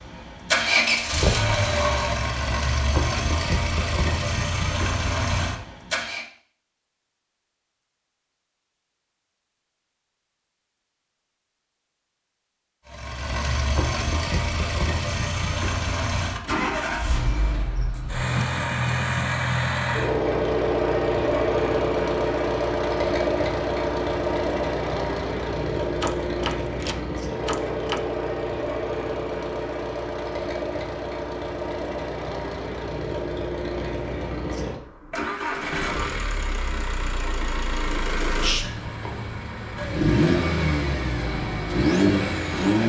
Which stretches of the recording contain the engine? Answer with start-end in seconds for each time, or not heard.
0.0-6.2, 12.8-42.8.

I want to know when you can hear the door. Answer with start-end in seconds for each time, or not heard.
17.2-18.6, 26.0-28.0.